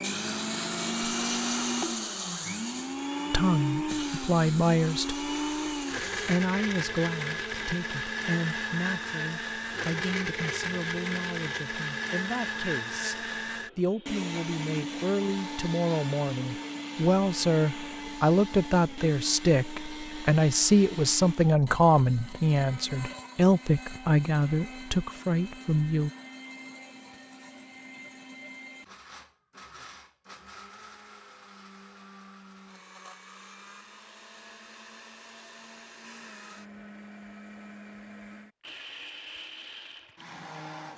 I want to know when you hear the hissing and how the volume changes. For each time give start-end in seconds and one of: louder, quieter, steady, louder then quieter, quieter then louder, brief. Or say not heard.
0.0-6.3 quieter.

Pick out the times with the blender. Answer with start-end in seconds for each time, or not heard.
0.0-40.9.